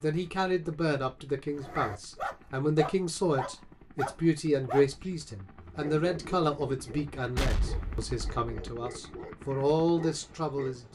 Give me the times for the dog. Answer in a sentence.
The dog can be heard from 1.5 to 10.8 s.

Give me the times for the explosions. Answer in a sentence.
The explosions can be heard from 7.3 to 8.5 s.